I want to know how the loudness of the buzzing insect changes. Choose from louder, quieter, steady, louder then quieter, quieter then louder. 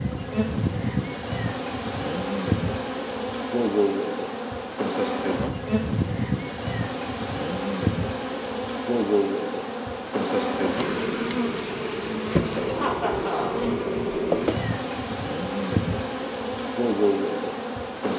steady.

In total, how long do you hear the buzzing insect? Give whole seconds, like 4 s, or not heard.
18 s.